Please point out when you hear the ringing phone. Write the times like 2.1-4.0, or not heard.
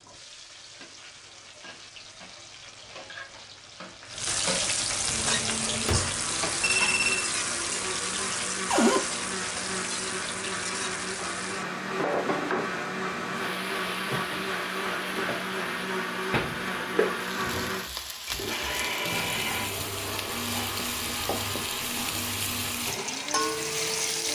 6.6-7.3, 18.6-20.4.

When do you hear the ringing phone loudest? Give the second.
7 s.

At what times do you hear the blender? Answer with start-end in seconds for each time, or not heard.
4.9-24.3.